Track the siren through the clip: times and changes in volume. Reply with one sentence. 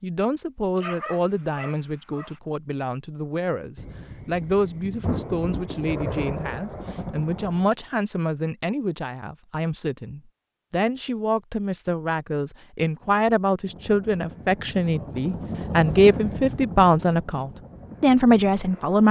You can't hear the siren here.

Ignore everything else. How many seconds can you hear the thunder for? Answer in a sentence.
The thunder can be heard for 4 seconds in total.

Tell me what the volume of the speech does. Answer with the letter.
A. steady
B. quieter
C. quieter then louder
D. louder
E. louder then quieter
D.